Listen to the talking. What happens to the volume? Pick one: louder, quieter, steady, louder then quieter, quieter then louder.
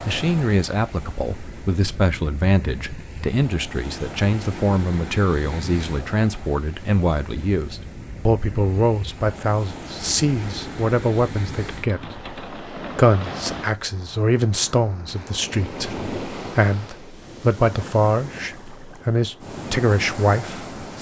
steady.